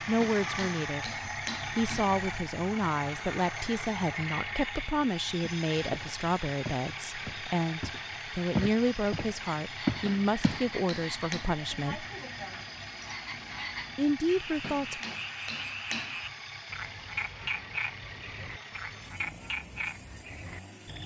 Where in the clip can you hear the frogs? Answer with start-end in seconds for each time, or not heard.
9.6-21.0.